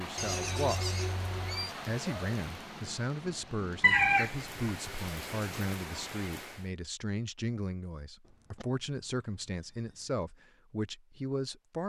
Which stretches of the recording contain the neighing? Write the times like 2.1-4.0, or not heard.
0.1-1.8, 8.2-10.2.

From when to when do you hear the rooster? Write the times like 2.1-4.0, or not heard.
3.8-4.8.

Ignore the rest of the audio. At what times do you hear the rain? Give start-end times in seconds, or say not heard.
0.0-6.7.